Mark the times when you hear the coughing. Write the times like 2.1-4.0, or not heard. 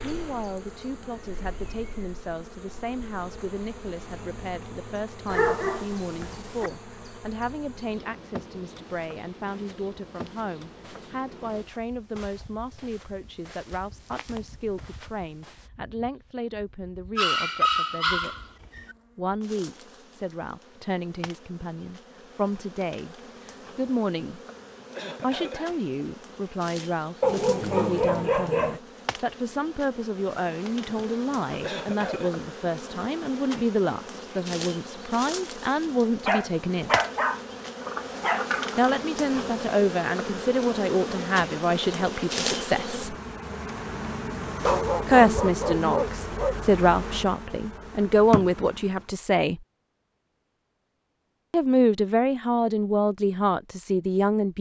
24.2-25.7, 30.9-32.4.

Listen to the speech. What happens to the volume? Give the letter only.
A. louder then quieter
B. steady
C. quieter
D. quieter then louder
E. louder
E.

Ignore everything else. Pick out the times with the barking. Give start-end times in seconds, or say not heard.
5.2-6.7, 17.1-18.9, 27.2-28.8, 36.2-39.0, 44.6-46.5.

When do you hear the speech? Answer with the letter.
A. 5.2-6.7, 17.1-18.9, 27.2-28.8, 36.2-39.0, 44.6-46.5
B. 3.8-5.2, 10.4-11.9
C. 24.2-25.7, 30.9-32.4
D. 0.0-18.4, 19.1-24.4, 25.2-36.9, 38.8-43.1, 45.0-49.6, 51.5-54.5
D.